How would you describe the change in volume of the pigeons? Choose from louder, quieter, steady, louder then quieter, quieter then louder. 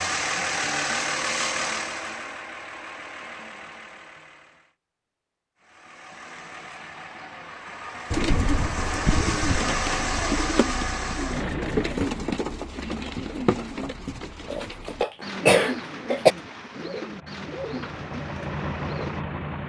quieter.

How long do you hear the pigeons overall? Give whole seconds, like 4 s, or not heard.
11 s.